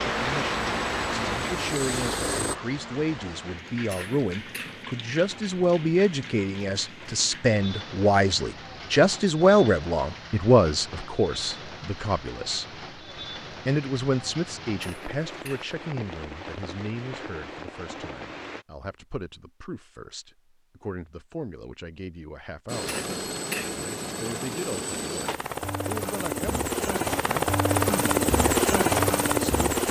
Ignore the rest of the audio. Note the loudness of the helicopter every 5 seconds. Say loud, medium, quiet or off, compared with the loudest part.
medium, off, off, off, medium, loud.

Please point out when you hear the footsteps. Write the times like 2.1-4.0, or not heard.
not heard.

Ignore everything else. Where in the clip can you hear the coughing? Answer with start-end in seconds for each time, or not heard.
3.9-4.8, 14.8-15.7, 22.9-23.8.